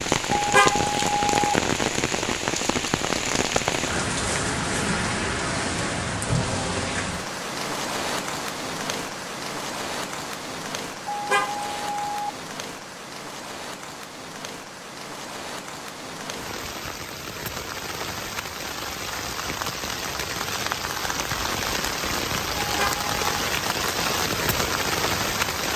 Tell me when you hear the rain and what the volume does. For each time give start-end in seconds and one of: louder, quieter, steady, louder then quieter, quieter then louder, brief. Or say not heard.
0.0-25.7 quieter then louder.